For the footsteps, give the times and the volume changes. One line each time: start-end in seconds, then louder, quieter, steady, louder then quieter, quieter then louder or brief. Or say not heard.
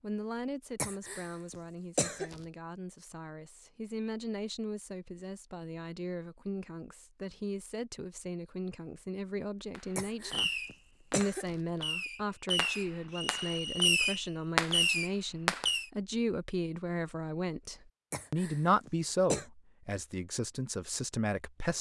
not heard.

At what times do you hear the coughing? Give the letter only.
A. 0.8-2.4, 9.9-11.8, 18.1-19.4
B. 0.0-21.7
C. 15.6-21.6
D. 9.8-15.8
A.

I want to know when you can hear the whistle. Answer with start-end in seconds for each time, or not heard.
13.1-14.3.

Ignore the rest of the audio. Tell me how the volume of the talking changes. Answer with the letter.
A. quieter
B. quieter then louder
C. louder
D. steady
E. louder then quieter
C.